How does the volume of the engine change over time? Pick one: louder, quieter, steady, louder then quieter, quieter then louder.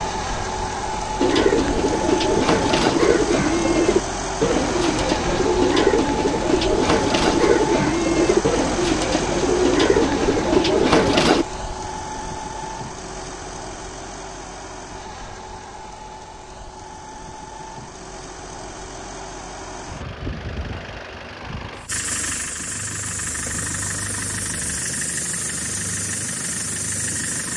quieter then louder.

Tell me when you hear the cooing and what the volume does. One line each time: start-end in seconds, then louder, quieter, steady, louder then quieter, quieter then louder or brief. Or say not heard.
1.1-11.4 steady.